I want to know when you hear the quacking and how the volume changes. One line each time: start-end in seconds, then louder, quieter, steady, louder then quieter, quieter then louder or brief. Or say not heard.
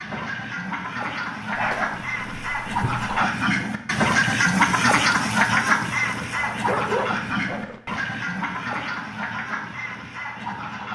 0.0-10.9 louder then quieter.